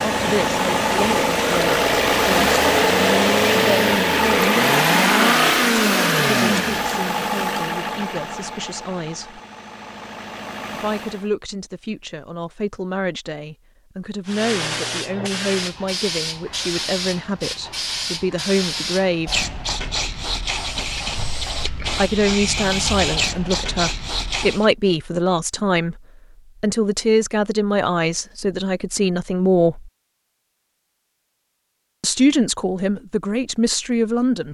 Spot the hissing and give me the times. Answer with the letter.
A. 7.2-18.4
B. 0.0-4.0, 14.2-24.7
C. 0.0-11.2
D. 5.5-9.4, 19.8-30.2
B.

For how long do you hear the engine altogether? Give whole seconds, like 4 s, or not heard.
11 s.